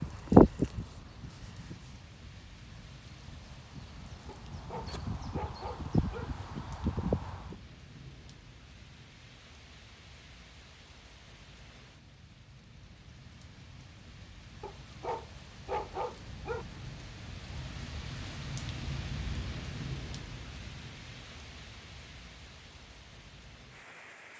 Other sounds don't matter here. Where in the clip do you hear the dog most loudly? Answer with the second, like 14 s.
16 s.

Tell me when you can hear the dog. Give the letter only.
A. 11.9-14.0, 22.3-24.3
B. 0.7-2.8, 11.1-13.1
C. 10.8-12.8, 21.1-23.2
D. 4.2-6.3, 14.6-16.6
D.